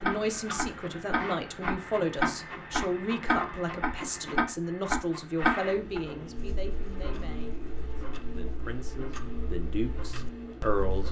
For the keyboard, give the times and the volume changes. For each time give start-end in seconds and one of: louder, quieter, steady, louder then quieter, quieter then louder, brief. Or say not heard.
not heard.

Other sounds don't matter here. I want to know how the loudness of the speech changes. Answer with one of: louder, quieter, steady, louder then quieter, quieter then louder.
quieter then louder.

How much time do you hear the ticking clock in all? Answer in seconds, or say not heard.
11 s.